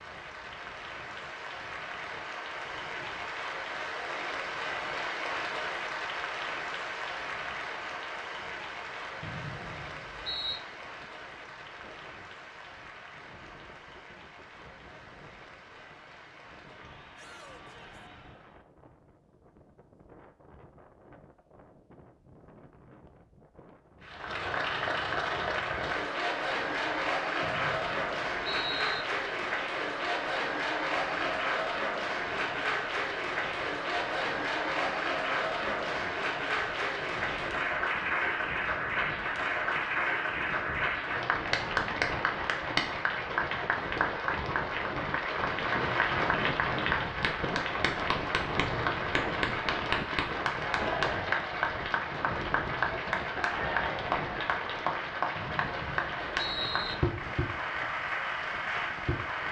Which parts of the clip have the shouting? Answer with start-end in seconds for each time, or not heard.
17.1-18.1.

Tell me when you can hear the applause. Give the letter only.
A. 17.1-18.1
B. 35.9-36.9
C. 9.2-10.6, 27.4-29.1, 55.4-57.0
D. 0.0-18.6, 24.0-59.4
D.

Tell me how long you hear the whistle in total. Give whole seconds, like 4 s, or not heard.
5 s.